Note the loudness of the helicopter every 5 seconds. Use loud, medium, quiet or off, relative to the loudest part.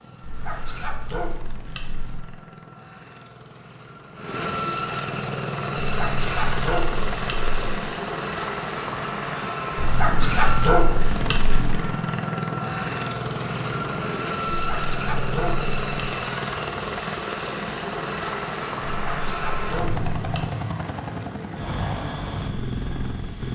medium, loud, loud, loud, loud.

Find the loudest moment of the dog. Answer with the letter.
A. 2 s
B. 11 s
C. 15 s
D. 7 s
B.